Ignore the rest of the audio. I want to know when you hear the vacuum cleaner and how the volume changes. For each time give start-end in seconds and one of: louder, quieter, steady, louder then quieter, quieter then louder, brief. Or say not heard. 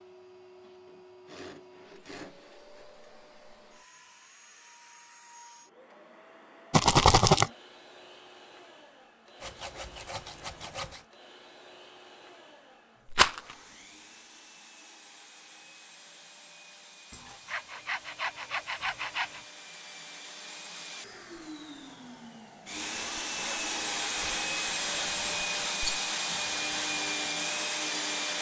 0.0-28.3 louder.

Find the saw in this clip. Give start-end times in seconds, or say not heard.
0.8-2.9, 9.4-11.1, 17.1-19.4, 22.9-25.8.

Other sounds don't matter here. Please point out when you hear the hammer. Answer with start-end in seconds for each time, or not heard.
not heard.